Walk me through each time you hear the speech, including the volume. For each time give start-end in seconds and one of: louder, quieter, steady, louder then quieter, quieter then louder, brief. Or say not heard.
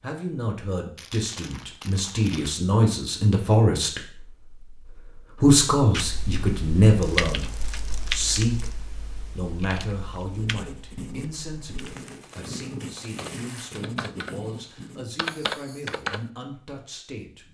0.0-17.5 quieter.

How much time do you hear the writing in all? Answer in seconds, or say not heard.
6 s.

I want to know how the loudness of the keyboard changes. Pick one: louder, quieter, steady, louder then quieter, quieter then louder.
quieter then louder.